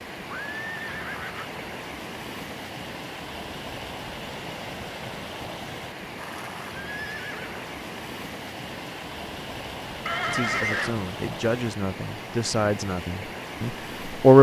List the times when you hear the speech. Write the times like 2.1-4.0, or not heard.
10.3-14.3.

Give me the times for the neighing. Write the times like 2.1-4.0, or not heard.
0.2-1.6, 6.2-7.5, 10.1-10.9.